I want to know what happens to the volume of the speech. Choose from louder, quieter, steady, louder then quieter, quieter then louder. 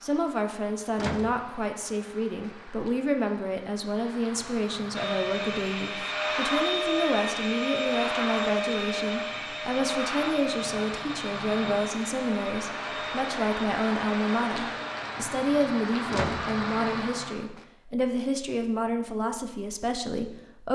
steady.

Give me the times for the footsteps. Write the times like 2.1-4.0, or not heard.
not heard.